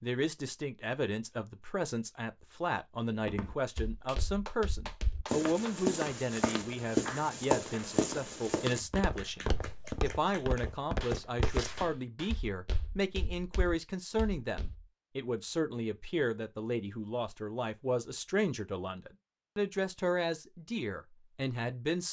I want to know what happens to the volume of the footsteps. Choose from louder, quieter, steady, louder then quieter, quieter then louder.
louder then quieter.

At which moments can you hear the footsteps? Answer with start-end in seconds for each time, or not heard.
3.2-14.8.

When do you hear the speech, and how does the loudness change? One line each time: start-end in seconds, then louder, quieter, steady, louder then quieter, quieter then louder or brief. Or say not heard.
0.0-22.0 steady.